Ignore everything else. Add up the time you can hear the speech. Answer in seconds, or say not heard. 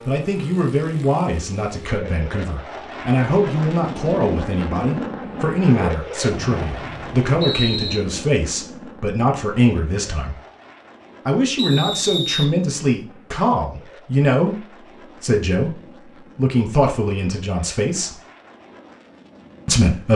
18 s.